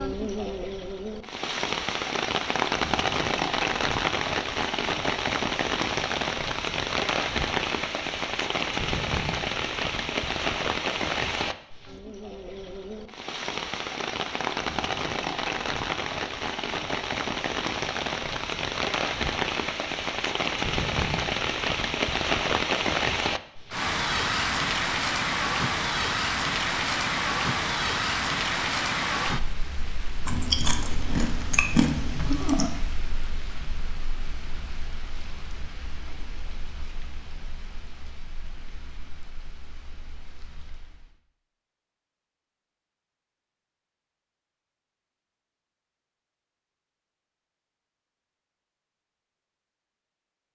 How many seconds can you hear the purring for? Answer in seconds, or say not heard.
not heard.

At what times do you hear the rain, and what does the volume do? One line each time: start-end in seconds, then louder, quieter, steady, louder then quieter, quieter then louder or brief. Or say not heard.
0.0-41.2 quieter.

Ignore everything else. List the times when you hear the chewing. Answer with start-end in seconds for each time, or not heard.
30.2-32.7.